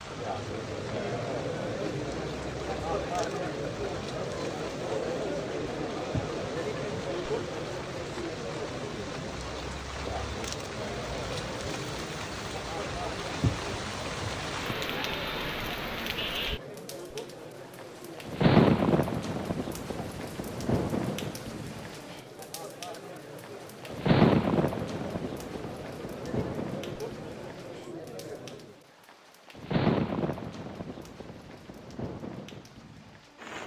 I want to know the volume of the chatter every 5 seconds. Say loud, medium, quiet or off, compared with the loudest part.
loud, loud, medium, medium, medium, medium, off.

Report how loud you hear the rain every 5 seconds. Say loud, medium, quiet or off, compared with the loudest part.
quiet, quiet, medium, loud, loud, medium, medium.